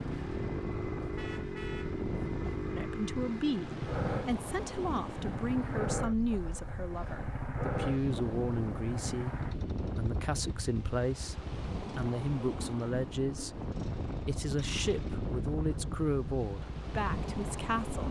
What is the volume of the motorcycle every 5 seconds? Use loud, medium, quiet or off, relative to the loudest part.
loud, loud, medium, medium.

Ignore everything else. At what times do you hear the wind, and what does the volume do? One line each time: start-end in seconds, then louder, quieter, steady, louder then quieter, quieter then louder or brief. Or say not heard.
0.0-18.0 steady.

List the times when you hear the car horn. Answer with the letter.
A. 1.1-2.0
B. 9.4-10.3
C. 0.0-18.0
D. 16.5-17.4
A.